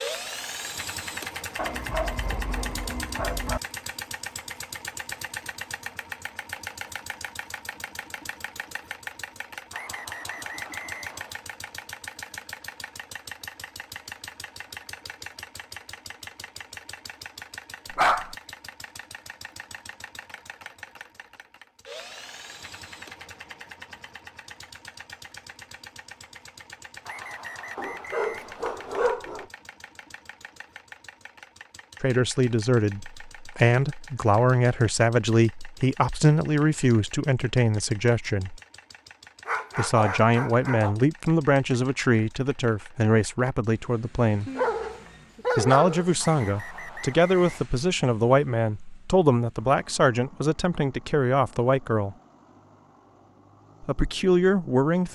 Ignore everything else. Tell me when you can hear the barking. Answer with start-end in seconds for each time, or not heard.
1.6-3.6, 17.9-18.4, 27.8-29.4, 39.5-41.0, 44.5-46.1.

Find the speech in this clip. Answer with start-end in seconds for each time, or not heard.
32.0-38.6, 39.8-44.5, 45.5-52.1, 53.8-55.0.